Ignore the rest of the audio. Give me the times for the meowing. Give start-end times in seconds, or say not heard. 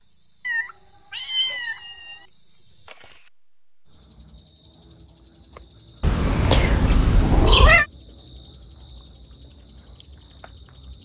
0.5-2.2, 6.0-7.8.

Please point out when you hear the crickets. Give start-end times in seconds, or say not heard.
0.0-11.0.